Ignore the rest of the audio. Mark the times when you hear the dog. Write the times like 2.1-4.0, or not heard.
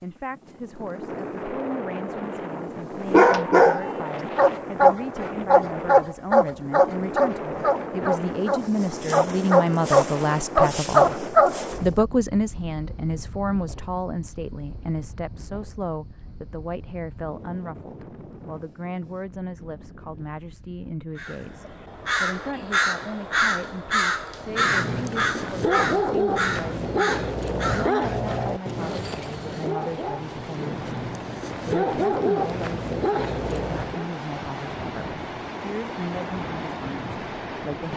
3.1-12.1, 24.4-34.0.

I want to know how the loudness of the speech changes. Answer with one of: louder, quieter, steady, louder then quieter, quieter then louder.
louder then quieter.